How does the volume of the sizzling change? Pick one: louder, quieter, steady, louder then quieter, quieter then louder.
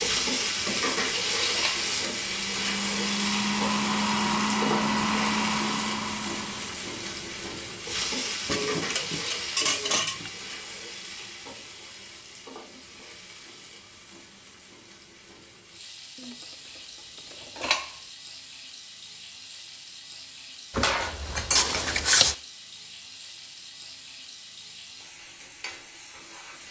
quieter.